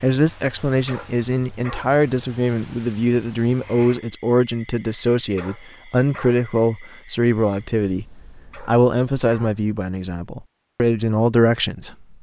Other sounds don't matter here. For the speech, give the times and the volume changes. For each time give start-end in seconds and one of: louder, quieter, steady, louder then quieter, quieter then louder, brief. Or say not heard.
0.0-12.1 steady.